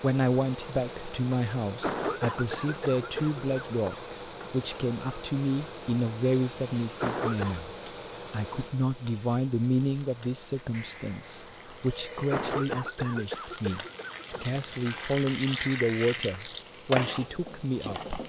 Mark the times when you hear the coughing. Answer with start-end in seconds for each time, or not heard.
1.8-4.0, 7.0-7.6, 12.3-14.4.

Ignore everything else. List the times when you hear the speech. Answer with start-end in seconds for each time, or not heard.
0.0-7.7, 8.3-18.1.